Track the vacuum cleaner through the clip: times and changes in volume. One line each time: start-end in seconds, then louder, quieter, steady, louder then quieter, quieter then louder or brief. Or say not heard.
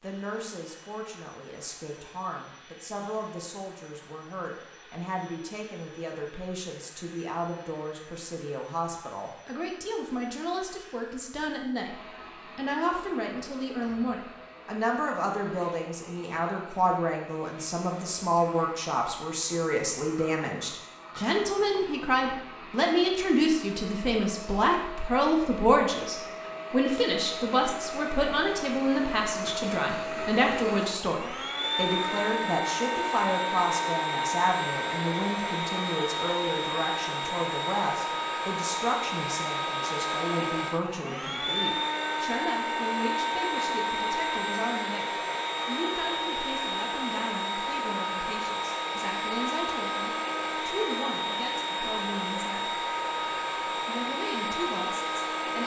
0.0-55.6 louder.